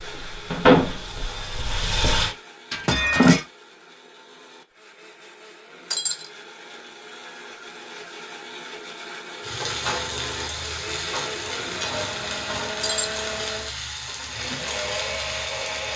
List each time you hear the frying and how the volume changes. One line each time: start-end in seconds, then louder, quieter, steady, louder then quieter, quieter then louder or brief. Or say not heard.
0.0-2.4 brief
9.4-15.9 steady.